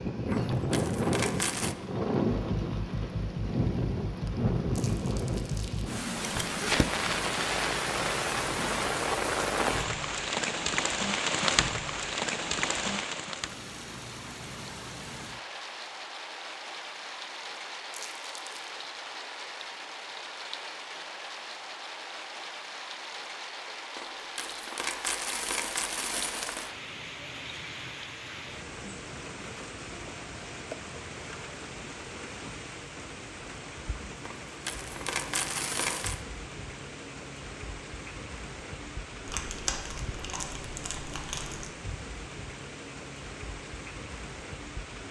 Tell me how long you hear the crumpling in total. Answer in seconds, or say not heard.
4 s.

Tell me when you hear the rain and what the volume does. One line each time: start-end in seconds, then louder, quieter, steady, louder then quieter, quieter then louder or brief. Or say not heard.
0.0-45.0 quieter.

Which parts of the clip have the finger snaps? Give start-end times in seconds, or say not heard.
not heard.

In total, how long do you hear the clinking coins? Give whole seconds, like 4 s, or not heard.
6 s.